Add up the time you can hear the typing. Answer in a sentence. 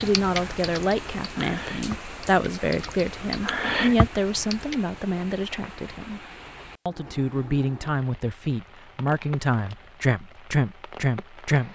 The typing can be heard for 5 seconds in total.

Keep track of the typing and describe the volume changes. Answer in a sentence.
The volume of the typing goes up.